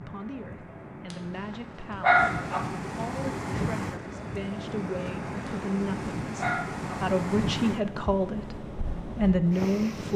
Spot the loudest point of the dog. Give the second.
2 s.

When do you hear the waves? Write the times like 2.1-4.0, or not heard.
0.0-10.1.